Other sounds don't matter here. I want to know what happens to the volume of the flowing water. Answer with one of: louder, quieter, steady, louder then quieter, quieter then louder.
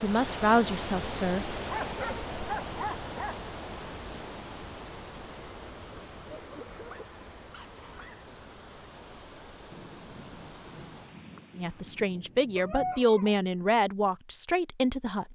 quieter.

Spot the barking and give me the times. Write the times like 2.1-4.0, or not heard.
1.6-3.4, 6.3-8.2, 12.6-13.4.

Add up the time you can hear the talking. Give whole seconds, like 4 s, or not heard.
5 s.